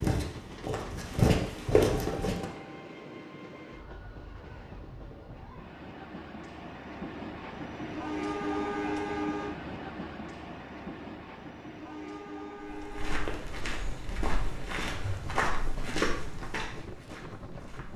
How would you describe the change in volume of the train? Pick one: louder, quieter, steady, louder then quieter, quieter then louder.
louder then quieter.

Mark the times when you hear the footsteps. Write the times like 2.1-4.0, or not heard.
0.0-2.5, 12.8-17.9.